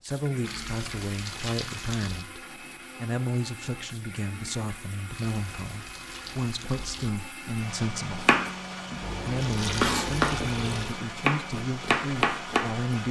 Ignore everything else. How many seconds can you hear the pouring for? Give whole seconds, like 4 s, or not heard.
6 s.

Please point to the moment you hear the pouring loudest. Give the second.
10 s.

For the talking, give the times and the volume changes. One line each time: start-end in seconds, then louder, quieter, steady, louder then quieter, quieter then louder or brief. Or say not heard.
0.0-13.0 steady.